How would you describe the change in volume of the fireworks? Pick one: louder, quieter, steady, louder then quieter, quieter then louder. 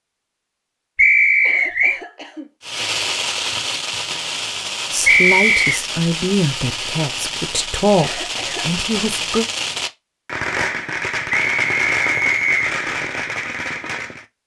steady.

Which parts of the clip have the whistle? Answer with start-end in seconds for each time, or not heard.
0.9-2.0, 5.0-5.8, 11.3-12.7.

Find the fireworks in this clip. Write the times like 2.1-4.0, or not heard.
2.6-14.2.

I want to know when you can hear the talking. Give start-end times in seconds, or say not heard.
4.9-9.4.